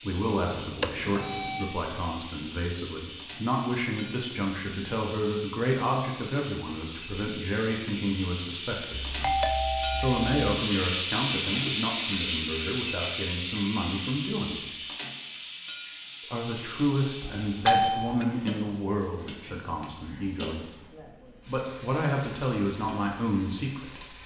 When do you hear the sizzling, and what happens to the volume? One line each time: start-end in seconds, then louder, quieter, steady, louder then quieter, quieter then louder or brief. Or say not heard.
0.0-24.2 louder then quieter.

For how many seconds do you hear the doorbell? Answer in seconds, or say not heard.
4 s.